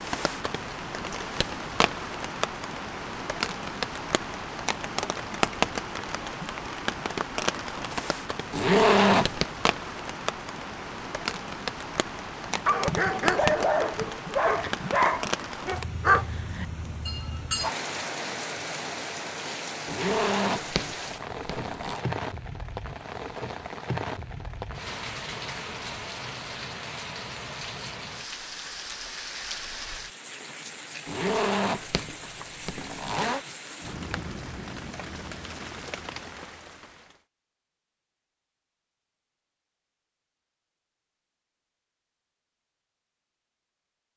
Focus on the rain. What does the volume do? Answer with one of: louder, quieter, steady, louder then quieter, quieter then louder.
quieter.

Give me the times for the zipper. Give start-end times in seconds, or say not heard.
8.5-9.4, 19.9-22.1, 31.1-33.4.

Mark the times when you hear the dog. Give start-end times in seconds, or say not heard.
12.5-17.8.